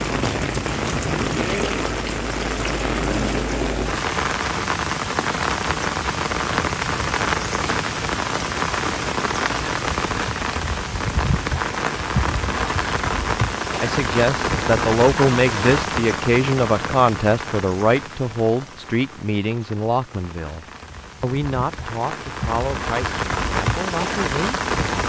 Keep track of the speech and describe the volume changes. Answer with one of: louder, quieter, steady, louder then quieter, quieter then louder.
quieter.